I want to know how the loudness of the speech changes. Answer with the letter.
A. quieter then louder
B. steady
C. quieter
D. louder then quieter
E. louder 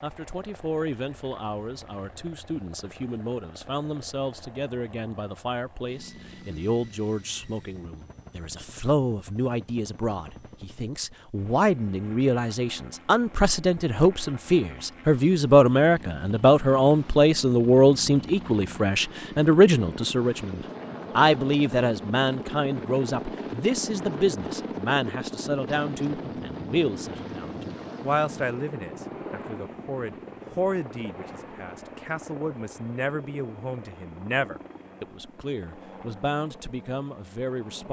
D.